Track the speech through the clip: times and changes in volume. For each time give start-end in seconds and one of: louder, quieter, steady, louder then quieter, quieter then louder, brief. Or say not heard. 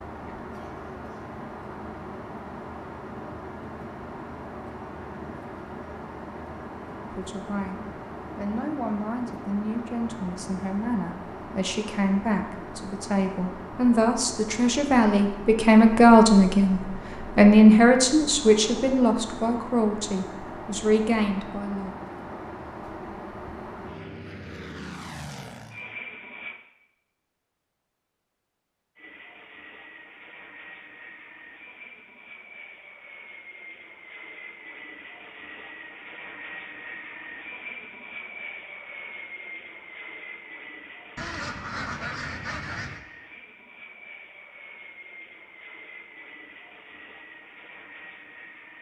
7.1-21.9 louder then quieter.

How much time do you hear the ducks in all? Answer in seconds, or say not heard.
2 s.